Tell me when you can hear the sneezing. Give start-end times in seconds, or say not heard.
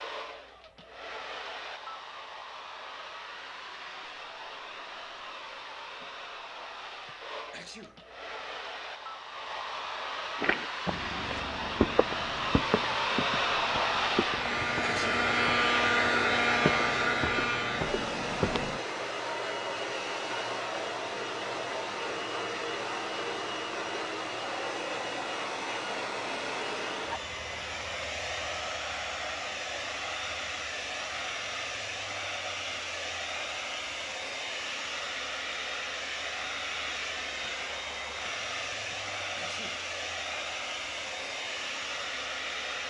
7.0-8.0, 14.3-15.2, 38.9-39.8.